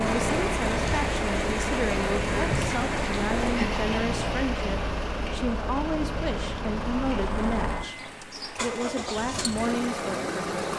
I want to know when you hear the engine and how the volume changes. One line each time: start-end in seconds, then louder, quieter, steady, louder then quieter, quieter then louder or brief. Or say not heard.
0.0-10.7 steady.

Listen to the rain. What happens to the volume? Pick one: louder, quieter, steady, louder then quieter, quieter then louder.
quieter.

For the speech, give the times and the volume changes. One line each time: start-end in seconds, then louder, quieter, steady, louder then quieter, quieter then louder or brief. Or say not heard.
0.0-10.7 steady.